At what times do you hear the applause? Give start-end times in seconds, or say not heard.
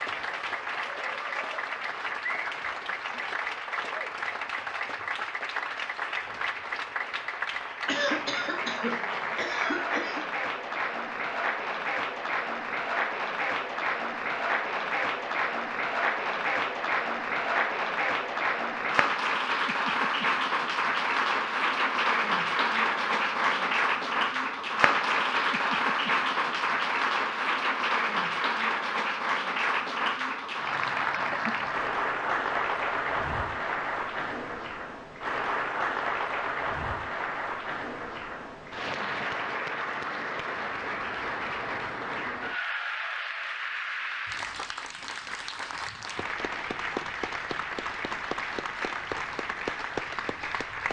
0.0-50.8.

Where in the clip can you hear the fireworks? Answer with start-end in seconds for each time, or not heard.
not heard.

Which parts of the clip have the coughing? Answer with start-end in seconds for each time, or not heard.
7.8-10.2.